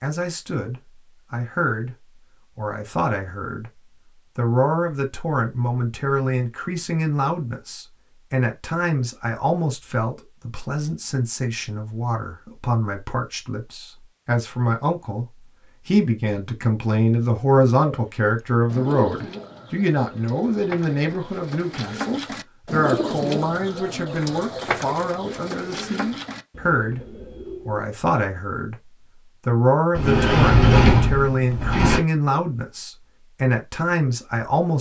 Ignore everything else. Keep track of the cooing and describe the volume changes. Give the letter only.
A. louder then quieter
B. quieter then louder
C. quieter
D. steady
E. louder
A.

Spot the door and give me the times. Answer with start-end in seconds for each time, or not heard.
29.9-32.0.